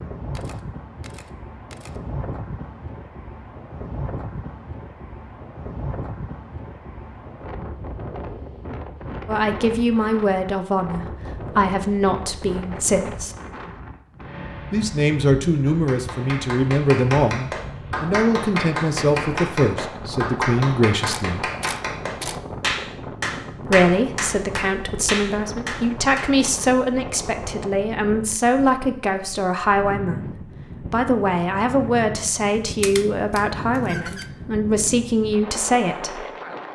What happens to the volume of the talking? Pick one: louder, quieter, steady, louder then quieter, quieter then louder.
steady.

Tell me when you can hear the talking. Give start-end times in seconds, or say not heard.
9.2-13.3, 14.7-21.5, 23.6-36.2.